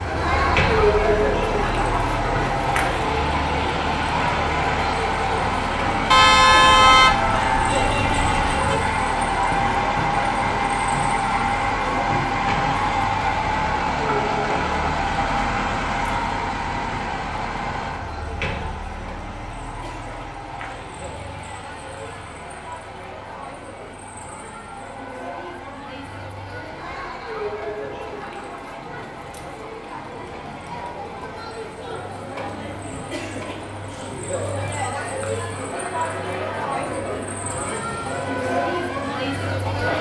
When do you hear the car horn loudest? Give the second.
7 s.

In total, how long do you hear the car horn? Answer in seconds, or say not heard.
3 s.